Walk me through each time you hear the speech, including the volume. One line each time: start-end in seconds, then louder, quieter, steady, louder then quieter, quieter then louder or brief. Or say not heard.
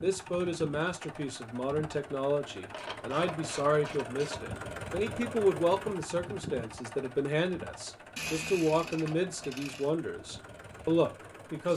0.0-11.7 steady.